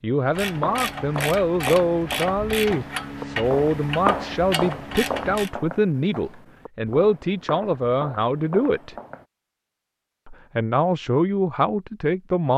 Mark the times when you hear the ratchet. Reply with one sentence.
You can hear the ratchet from 0.2 to 5.5 s.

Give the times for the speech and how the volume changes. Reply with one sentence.
You can hear the speech from 0.0 to 8.9 s, at a steady volume; and briefly from 10.2 to 12.5 s.